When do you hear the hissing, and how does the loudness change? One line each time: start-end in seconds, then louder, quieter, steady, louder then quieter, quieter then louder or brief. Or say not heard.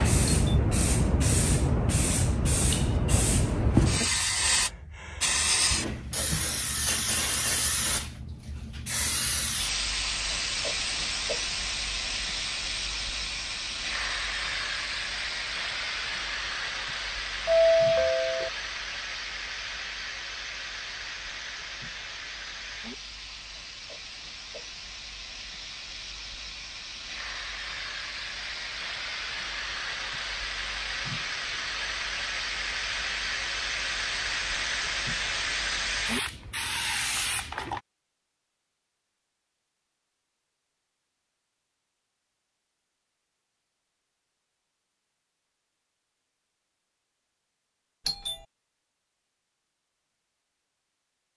0.0-37.8 quieter then louder.